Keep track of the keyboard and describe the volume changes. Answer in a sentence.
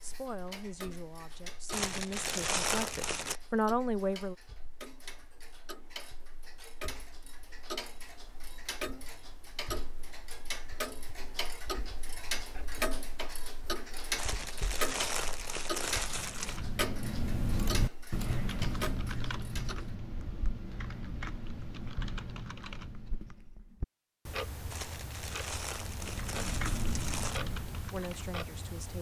The loudness of the keyboard goes down.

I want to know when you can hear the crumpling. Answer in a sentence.
The crumpling can be heard from 1.7 to 3.4 s, from 14.2 to 16.6 s and from 24.7 to 27.4 s.